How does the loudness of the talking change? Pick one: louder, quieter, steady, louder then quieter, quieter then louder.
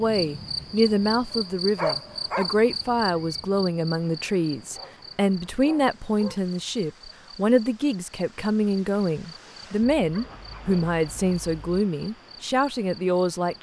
steady.